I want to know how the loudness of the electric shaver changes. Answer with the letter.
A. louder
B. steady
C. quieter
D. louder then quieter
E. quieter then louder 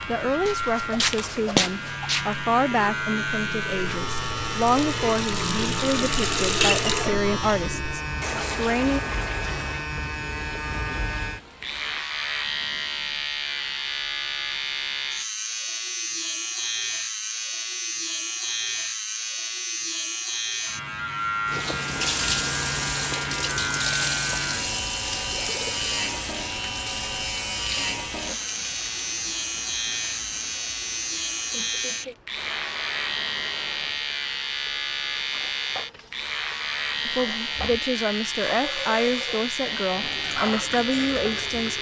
B.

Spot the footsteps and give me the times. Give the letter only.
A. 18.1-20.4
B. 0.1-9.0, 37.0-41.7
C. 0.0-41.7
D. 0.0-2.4
D.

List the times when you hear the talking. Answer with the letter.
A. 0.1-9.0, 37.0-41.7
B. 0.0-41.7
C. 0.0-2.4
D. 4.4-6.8
A.